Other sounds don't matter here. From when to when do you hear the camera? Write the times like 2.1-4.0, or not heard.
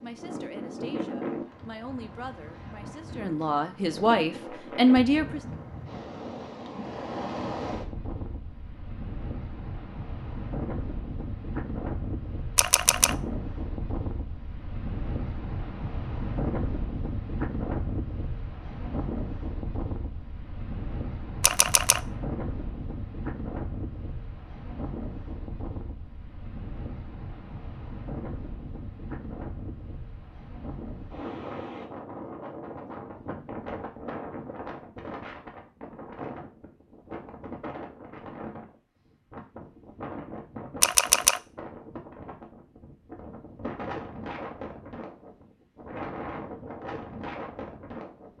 12.6-13.2, 21.4-22.0, 40.8-41.4.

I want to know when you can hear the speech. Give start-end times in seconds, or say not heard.
0.0-5.4.